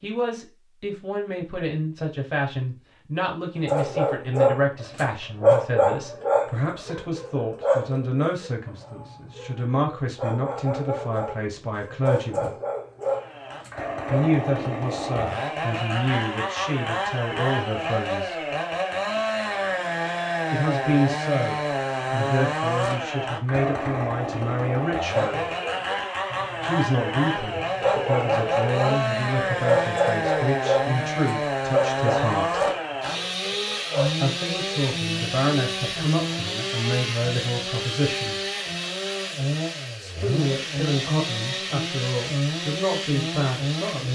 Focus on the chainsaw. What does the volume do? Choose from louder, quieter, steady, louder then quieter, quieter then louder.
steady.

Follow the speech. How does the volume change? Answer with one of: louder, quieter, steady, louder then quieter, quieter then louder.
steady.